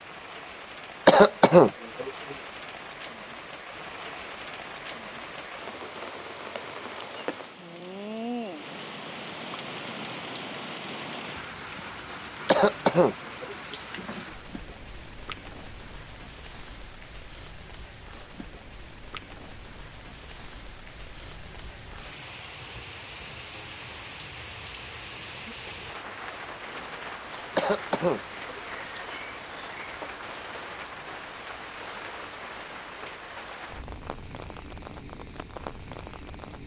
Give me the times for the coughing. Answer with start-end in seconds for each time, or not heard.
1.1-2.4, 12.4-13.8, 27.6-28.6.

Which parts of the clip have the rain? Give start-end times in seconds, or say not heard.
0.0-36.6.